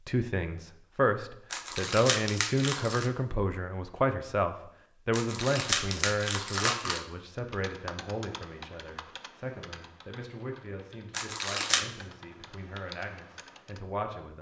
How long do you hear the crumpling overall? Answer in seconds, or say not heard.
4 s.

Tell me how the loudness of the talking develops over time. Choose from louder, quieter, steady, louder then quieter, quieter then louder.
quieter.